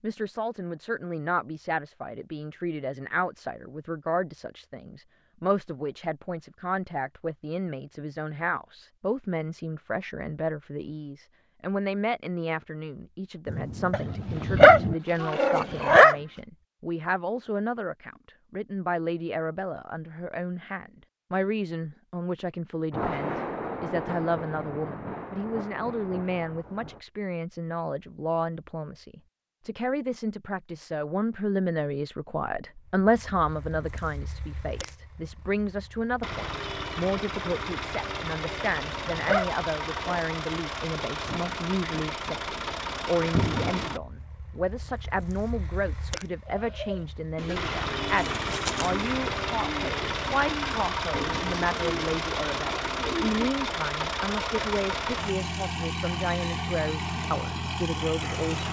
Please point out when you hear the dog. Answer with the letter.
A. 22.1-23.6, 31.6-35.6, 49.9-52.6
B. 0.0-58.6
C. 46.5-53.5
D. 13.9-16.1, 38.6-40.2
D.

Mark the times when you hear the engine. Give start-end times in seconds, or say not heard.
33.0-58.6.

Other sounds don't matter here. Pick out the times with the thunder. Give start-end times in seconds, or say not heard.
13.4-14.9, 22.9-27.0, 41.2-44.0.